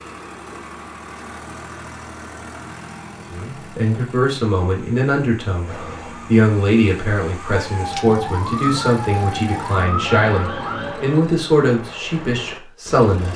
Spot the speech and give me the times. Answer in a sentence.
You can hear the speech from 3.3 to 13.3 s.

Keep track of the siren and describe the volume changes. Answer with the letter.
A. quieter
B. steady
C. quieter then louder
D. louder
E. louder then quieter
D.